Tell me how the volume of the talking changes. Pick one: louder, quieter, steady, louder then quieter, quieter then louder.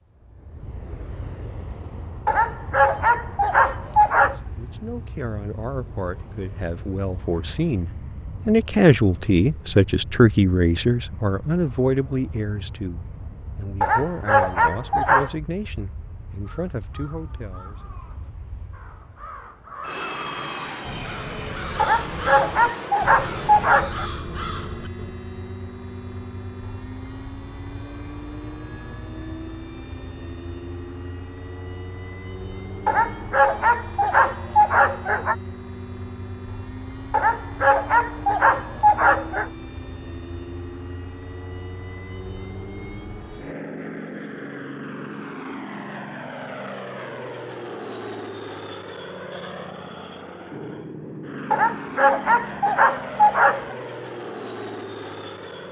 louder then quieter.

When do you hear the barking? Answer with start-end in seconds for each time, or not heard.
2.2-4.3, 13.8-15.3, 21.8-24.1, 32.9-35.4, 37.1-39.5, 51.5-53.8.